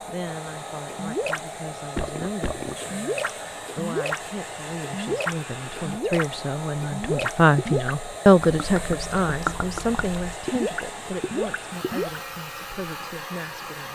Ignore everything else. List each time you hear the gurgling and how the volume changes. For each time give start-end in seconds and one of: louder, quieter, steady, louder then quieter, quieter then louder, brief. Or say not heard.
0.8-12.2 steady.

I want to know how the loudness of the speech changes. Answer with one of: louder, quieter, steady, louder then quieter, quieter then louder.
louder then quieter.